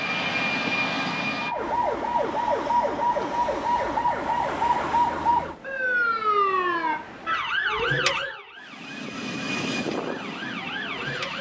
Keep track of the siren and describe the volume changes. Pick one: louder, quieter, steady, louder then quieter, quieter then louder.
quieter.